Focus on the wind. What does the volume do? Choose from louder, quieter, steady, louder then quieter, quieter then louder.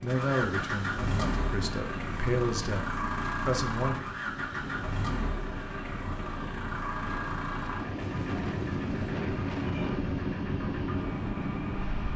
louder.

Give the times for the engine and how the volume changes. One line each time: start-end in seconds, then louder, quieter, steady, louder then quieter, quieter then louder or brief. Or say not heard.
0.0-12.1 steady.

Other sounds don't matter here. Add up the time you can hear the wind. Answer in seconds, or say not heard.
12 s.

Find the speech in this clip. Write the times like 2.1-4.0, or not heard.
0.0-4.0.